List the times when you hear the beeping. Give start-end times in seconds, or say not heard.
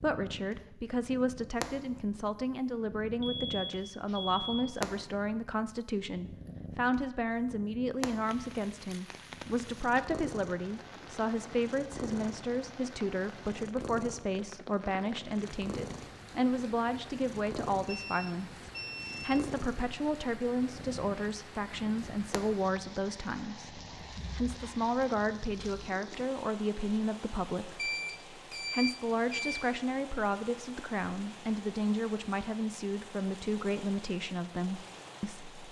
3.2-4.8, 17.9-19.4, 27.8-29.6.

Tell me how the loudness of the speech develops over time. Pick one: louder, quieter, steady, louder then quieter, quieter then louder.
steady.